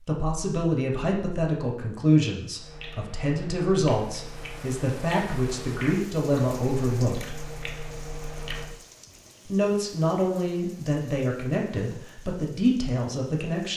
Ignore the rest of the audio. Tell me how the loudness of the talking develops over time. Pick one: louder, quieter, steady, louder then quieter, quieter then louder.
steady.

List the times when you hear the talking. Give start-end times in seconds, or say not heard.
0.1-7.3, 9.4-13.7.